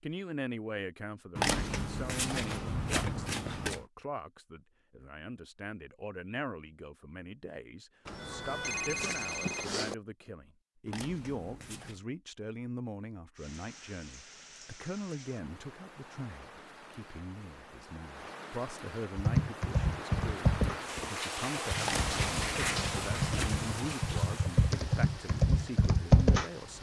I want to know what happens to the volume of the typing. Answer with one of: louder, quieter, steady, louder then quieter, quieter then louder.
quieter then louder.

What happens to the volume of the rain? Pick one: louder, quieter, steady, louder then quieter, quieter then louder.
louder then quieter.